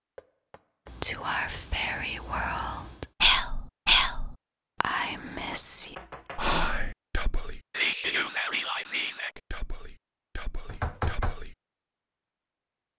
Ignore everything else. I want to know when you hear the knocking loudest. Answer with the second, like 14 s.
11 s.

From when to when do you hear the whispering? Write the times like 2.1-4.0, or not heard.
0.9-11.6.